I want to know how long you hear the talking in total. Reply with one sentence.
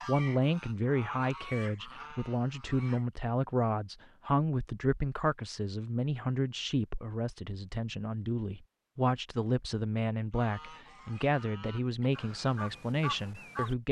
You can hear the talking for 14 seconds altogether.